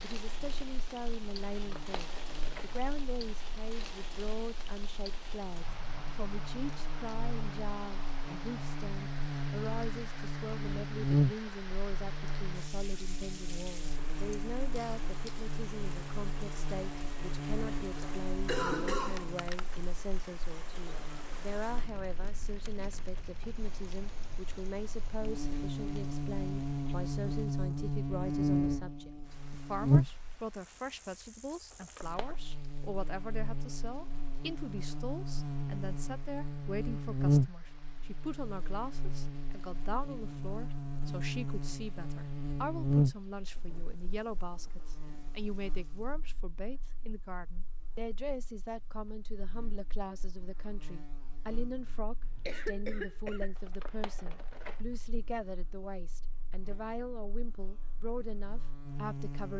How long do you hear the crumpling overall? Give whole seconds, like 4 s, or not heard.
3 s.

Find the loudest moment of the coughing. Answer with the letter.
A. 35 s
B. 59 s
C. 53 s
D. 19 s
D.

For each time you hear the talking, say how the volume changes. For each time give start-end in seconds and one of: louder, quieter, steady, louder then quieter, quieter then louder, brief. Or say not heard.
0.0-59.5 steady.